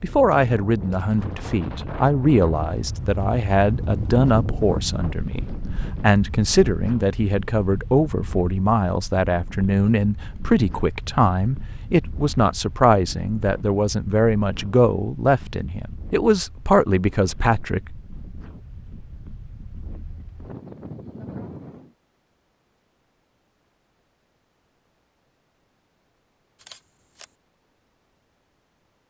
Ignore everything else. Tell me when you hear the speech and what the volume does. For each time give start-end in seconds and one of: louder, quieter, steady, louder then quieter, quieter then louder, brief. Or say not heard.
0.0-17.9 steady.